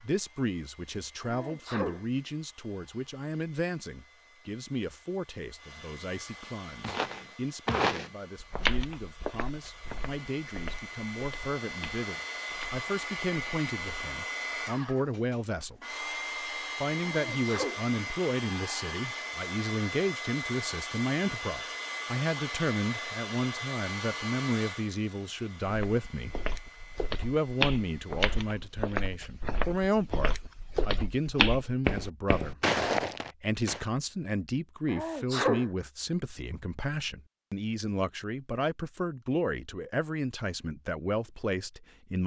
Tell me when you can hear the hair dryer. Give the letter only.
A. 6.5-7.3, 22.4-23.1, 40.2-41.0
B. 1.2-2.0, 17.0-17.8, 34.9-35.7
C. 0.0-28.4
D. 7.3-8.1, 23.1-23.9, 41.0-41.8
C.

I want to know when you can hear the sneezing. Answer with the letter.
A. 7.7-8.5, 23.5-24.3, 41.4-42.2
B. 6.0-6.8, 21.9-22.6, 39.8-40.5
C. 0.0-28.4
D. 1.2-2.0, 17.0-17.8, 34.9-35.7
D.